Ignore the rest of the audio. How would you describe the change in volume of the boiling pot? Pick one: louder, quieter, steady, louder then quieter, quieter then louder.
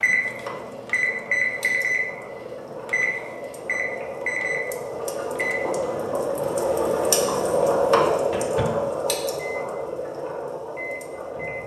louder then quieter.